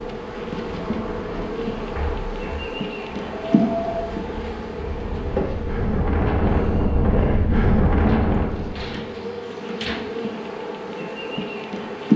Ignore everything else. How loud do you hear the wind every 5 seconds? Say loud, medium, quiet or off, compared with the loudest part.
medium, loud, off.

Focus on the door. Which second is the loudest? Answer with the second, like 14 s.
10 s.